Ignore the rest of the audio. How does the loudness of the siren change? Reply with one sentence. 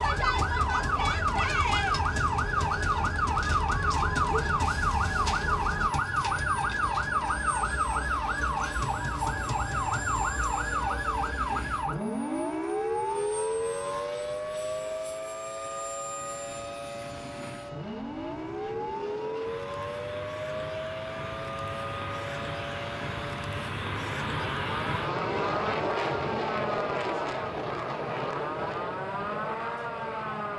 The volume of the siren goes down.